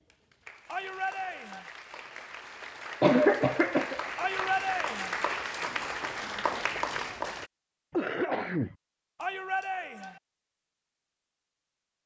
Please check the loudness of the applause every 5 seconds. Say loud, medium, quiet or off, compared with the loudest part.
medium, loud, off.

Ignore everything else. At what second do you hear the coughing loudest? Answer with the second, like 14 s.
3 s.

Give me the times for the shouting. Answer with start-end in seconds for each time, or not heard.
0.7-1.7, 4.2-5.2, 9.2-10.2.